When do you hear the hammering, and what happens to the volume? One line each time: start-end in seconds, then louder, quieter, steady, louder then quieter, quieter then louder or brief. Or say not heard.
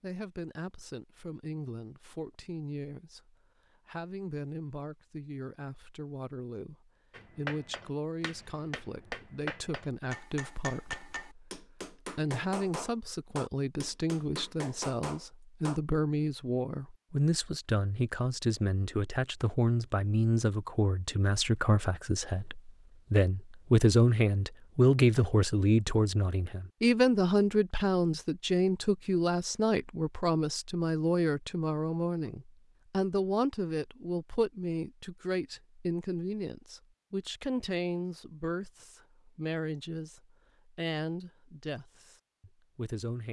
7.1-15.8 louder.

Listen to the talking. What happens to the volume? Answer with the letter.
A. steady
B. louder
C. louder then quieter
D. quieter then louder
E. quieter
C.